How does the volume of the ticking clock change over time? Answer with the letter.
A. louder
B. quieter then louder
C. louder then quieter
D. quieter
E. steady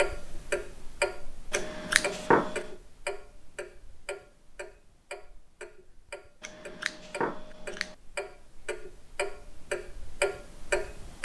B.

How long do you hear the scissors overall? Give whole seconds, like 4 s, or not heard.
3 s.